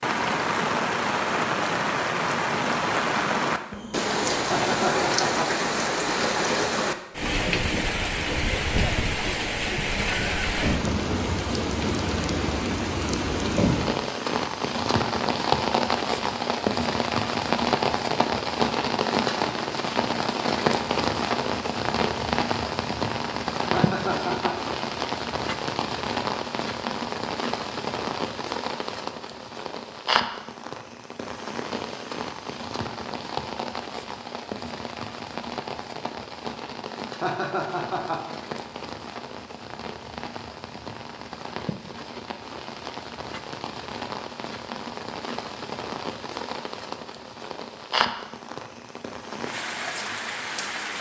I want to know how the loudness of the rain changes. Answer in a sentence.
The volume of the rain goes down.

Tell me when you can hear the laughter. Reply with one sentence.
You can hear the laughter from 4.5 to 5.5 s, from 23.7 to 24.6 s and from 37.2 to 38.2 s.